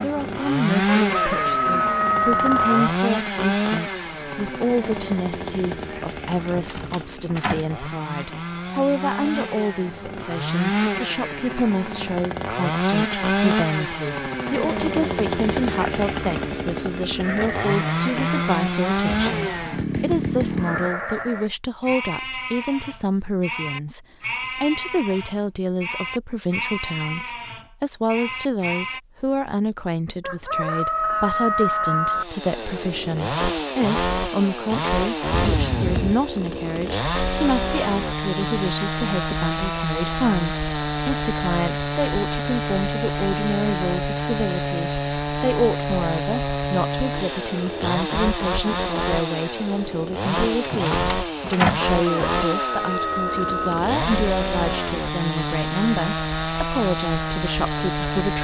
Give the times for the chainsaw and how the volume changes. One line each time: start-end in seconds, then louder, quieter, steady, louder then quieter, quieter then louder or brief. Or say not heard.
0.0-20.9 quieter then louder
32.1-58.3 steady.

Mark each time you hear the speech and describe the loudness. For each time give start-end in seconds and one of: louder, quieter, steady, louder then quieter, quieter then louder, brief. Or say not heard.
0.0-58.3 steady.